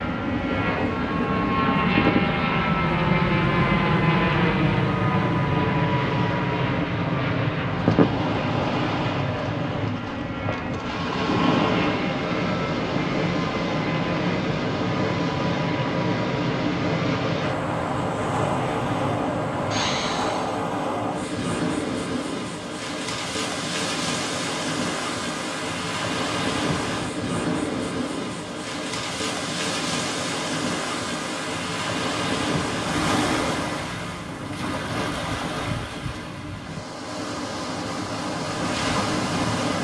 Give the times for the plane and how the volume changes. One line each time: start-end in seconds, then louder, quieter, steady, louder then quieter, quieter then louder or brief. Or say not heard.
0.0-20.6 quieter.